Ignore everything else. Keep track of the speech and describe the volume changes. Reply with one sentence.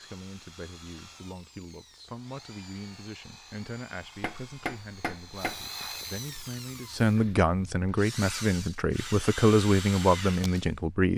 The volume of the speech goes up.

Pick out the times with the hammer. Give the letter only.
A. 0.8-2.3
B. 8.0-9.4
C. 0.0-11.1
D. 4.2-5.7
D.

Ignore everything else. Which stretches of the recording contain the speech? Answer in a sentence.
You can hear the speech from 0.0 to 11.1 s.